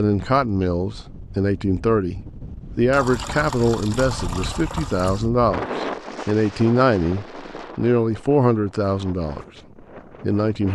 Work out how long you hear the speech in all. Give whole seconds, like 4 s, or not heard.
10 s.